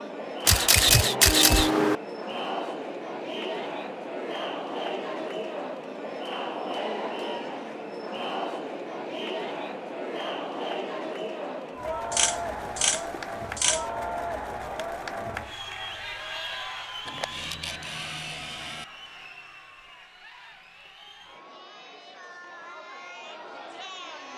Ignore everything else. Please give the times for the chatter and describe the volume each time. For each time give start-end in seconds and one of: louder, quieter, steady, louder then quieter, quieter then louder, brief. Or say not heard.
0.0-24.3 quieter.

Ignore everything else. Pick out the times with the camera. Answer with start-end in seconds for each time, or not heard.
0.5-2.0, 12.1-13.8, 17.1-18.9.